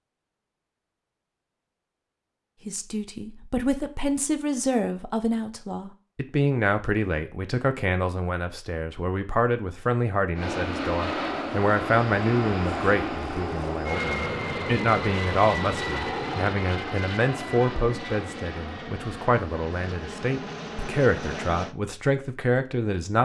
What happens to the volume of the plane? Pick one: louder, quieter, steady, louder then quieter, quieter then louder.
quieter.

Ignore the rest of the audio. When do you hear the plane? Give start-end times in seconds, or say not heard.
10.3-21.8.